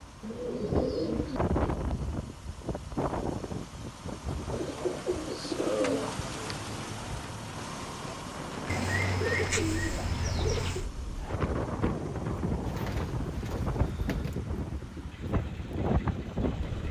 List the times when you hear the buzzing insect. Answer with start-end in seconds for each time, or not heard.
not heard.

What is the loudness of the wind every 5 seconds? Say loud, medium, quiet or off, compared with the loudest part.
loud, medium, loud, loud.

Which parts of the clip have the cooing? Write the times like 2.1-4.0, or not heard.
0.2-1.8, 4.5-6.7, 8.7-10.9, 12.7-14.4.